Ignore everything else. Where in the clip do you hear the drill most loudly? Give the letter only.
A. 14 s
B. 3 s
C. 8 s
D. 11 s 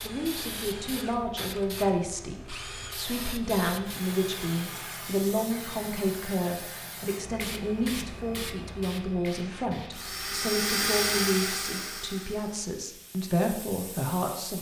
D.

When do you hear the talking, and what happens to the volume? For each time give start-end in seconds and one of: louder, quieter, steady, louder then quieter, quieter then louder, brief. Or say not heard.
0.0-14.5 steady.